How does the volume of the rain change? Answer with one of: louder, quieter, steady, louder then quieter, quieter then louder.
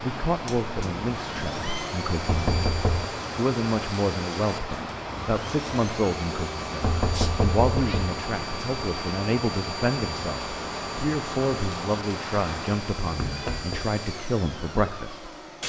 steady.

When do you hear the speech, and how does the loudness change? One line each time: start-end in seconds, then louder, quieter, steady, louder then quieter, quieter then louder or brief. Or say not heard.
0.0-2.7 brief
3.4-15.3 steady.